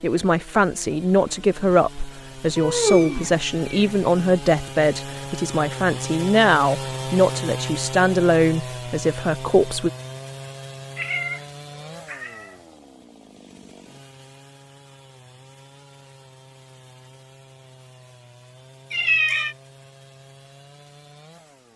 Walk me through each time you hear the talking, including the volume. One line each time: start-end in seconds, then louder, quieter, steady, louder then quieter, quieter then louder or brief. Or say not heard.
0.0-9.9 steady.